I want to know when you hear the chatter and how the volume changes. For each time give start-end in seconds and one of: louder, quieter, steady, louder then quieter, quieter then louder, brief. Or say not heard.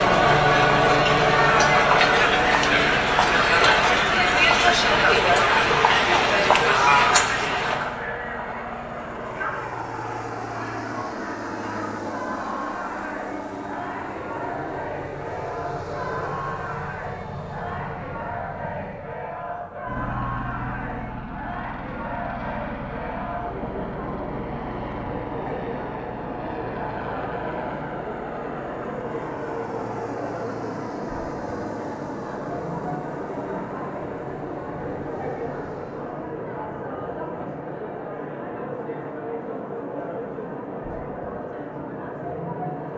0.0-42.9 quieter.